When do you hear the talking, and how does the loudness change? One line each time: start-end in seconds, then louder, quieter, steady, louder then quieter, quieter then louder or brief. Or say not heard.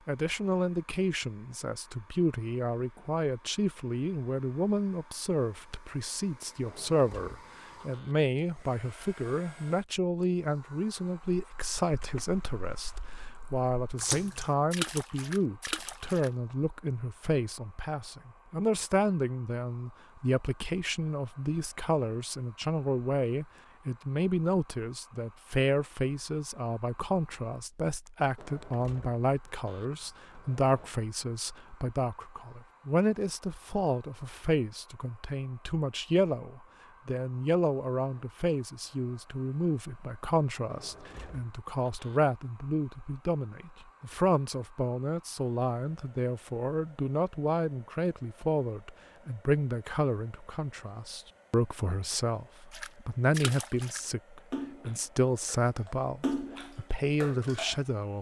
0.1-58.1 steady.